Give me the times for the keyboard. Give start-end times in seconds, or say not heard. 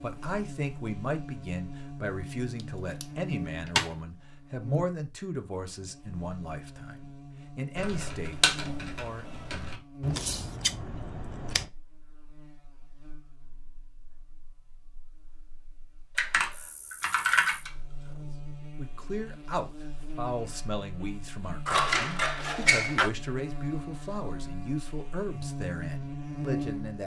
7.8-9.8, 16.1-18.1.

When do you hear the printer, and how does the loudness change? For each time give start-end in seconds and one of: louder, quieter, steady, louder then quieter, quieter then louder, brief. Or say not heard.
not heard.